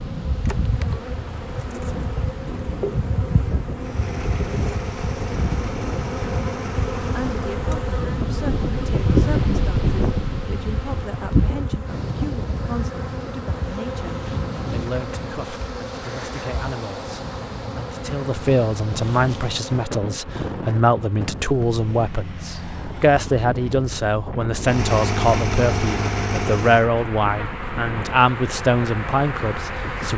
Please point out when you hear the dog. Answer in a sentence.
The dog can't be heard in this clip.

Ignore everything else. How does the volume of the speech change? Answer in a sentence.
The loudness of the speech goes up.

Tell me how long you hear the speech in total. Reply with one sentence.
The speech can be heard for 23 seconds in total.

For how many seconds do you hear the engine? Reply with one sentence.
You can hear the engine for 6 seconds altogether.